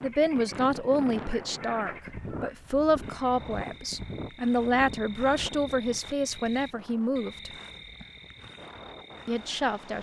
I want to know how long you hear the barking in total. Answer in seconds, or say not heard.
not heard.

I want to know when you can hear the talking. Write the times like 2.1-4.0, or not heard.
0.0-7.5, 9.2-9.9.